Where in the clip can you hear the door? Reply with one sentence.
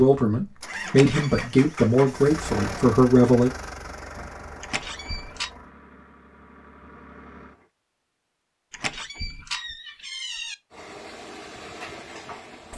The door can be heard from 0.8 to 1.4 s, from 4.6 to 5.5 s and from 8.7 to 10.6 s.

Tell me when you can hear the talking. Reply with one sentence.
You can hear the talking from 0.0 to 3.5 s.